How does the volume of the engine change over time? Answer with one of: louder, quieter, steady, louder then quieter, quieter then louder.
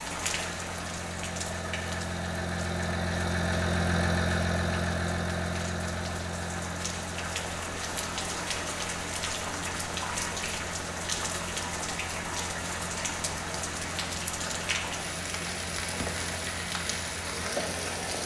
quieter.